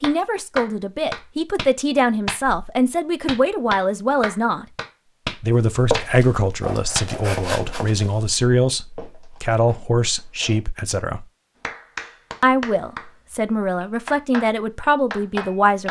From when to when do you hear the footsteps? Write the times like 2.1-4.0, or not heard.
5.7-10.6.